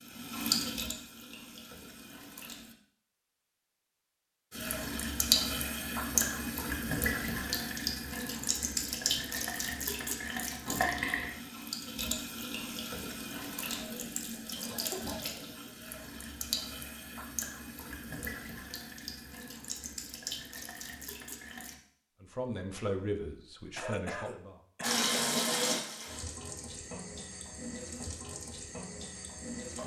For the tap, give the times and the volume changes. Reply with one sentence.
The tap can be heard briefly from 0.0 to 2.8 s; from 4.5 to 21.8 s, getting quieter; and from 24.8 to 29.8 s, getting quieter.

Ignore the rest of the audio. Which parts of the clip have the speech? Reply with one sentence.
You can hear the speech from 22.2 to 24.6 s.